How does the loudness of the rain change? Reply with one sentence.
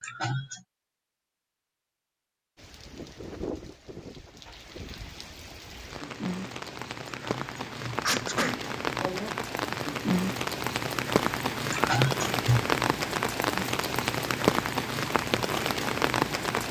The volume of the rain goes up.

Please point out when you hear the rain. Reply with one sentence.
The rain can be heard from 2.5 to 16.6 s.